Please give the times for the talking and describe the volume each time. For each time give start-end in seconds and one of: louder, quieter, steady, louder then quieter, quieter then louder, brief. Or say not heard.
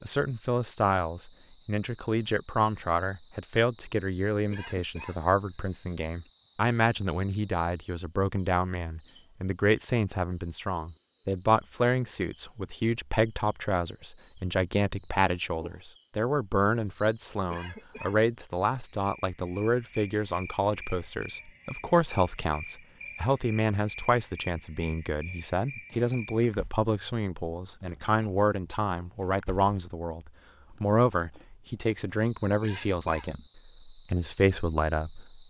0.0-35.4 steady.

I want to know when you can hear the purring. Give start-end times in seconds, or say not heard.
not heard.